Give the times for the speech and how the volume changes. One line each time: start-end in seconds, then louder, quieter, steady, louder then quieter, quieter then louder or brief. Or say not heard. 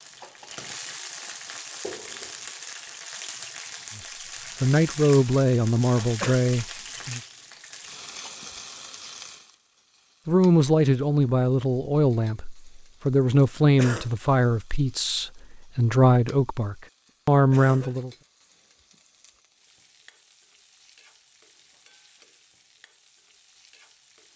4.6-7.2 brief
10.2-18.1 steady.